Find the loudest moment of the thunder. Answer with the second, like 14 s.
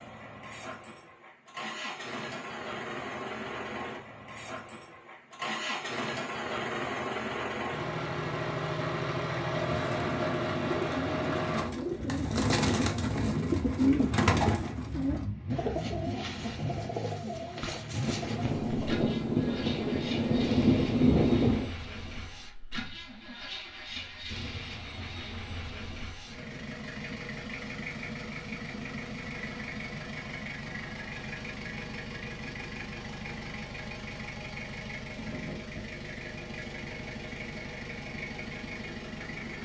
21 s.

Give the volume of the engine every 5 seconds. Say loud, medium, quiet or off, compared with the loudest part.
medium, loud, loud, medium, medium, medium, medium, medium.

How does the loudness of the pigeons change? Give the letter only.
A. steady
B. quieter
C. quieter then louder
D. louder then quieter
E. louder
D.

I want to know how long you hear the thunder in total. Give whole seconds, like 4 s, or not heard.
4 s.